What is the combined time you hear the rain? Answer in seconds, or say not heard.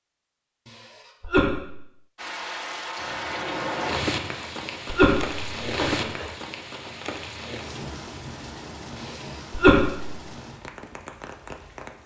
10 s.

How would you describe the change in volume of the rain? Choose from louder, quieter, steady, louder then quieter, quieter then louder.
quieter.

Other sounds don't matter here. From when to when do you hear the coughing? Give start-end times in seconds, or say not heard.
0.7-1.8, 4.3-6.2, 8.9-10.1.